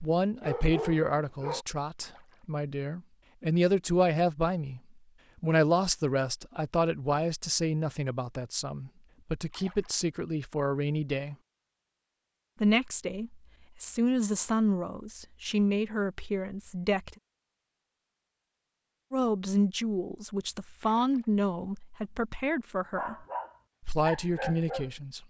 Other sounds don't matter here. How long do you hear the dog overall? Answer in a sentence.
The dog can be heard for 4 seconds in total.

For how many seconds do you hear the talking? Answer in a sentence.
You can hear the talking for 21 seconds altogether.